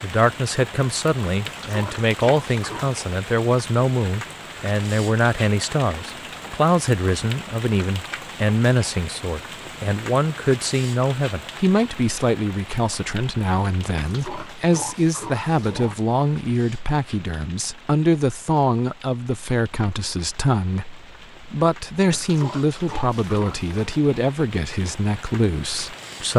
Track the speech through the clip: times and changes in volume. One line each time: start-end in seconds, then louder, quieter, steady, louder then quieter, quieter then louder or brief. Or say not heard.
0.0-26.3 steady.